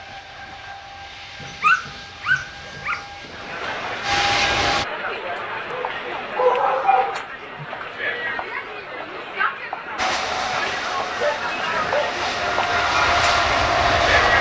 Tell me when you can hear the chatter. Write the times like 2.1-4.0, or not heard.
3.2-14.3.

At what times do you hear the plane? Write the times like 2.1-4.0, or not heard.
0.0-4.8, 9.9-14.3.